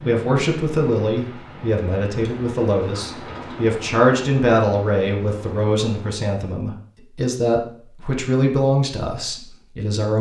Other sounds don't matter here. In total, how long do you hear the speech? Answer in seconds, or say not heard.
10 s.